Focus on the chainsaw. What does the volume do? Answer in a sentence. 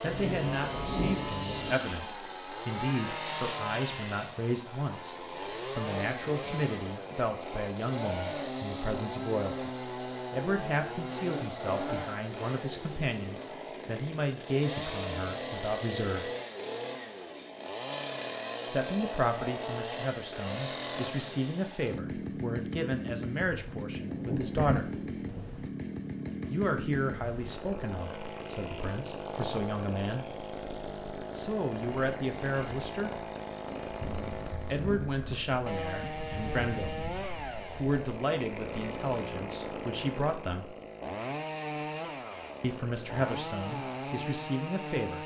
The volume of the chainsaw stays about the same.